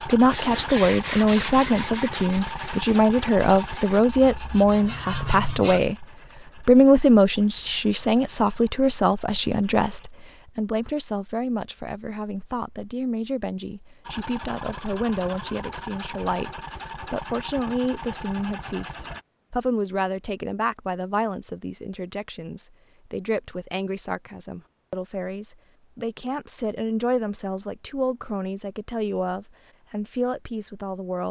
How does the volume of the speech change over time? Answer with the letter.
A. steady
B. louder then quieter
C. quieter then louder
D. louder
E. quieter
E.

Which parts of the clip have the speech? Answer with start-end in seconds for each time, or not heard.
0.1-31.2.